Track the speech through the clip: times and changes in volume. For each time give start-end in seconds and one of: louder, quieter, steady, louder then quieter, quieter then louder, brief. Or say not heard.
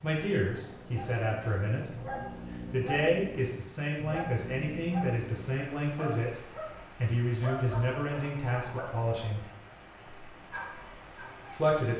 0.0-1.9 brief
2.7-9.4 steady
11.5-11.9 brief.